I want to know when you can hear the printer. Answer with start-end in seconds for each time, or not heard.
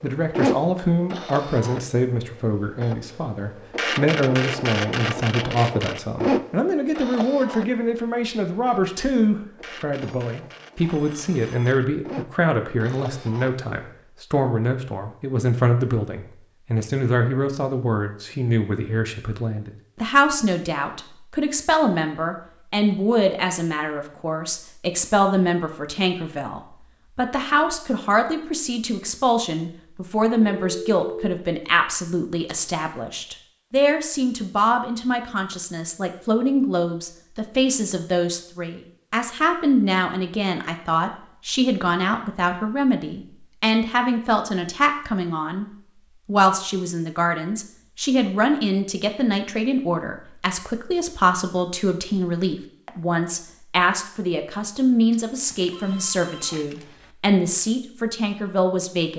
0.0-13.7.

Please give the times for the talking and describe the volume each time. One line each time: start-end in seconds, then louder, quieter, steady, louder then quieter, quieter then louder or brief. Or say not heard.
0.0-59.1 steady.